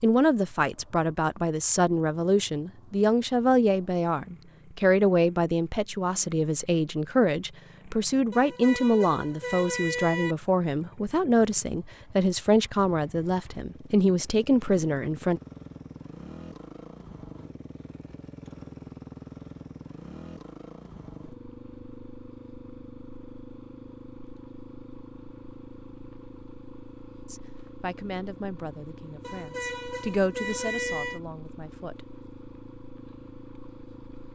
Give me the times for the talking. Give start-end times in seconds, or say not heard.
0.0-15.4, 27.2-32.0.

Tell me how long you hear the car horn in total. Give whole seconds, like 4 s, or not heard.
4 s.